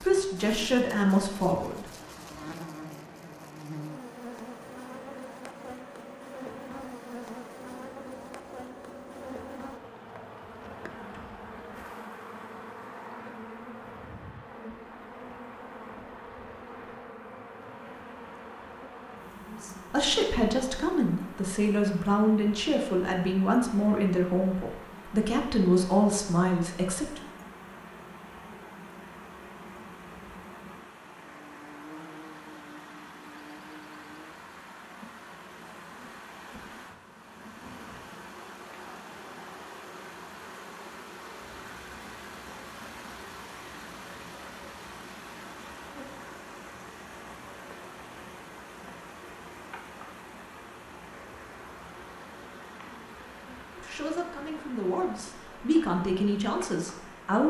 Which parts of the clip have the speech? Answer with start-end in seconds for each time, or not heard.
0.0-1.9, 19.4-27.2, 53.8-57.4.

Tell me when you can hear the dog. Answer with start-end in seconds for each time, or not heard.
not heard.